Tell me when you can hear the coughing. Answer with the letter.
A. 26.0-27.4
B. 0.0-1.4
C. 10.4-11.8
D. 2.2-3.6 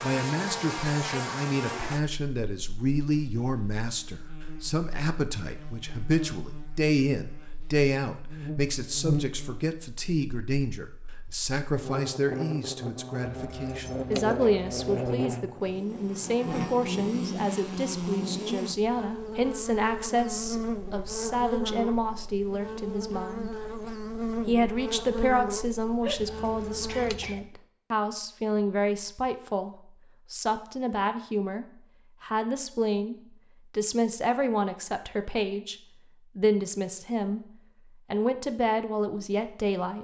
A.